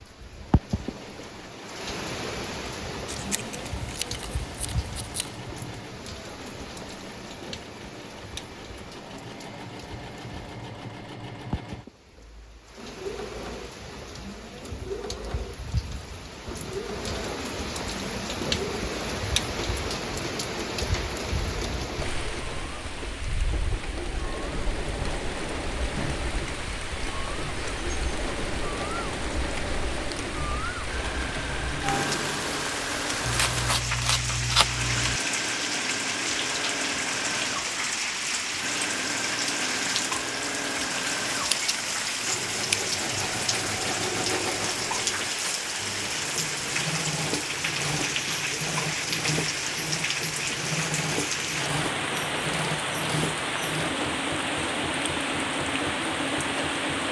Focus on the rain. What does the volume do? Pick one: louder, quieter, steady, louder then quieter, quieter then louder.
louder.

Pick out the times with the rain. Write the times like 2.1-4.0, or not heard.
0.0-57.0.